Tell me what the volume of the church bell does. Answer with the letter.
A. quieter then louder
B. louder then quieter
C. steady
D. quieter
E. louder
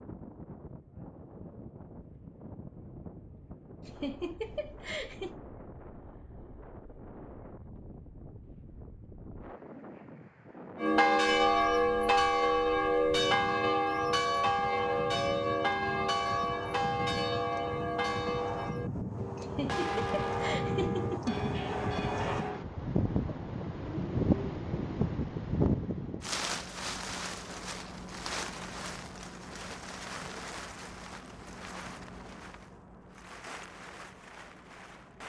D.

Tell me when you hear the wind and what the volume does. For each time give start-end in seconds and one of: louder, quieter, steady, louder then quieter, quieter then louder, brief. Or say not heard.
0.0-35.2 louder then quieter.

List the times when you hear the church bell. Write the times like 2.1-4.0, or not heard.
10.8-22.6.